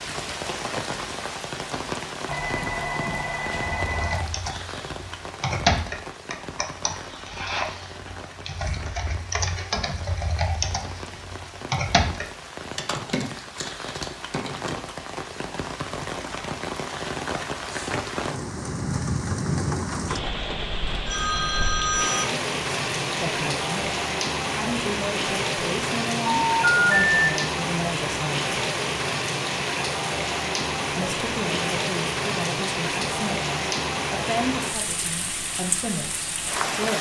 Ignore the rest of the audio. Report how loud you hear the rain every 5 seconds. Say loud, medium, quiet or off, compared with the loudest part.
medium, quiet, medium, loud, loud, loud, loud, loud.